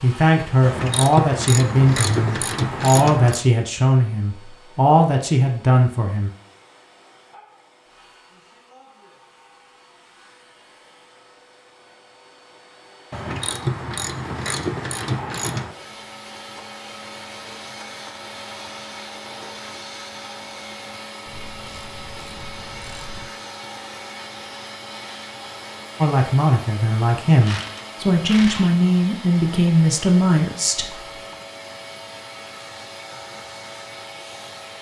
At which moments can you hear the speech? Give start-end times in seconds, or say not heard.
0.0-6.3, 26.0-31.1.